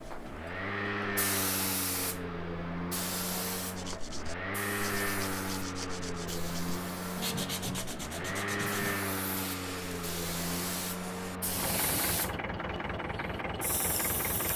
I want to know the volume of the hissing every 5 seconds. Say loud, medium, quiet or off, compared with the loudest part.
loud, medium, loud.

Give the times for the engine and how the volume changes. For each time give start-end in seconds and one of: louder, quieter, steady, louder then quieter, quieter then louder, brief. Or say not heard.
0.0-14.5 steady.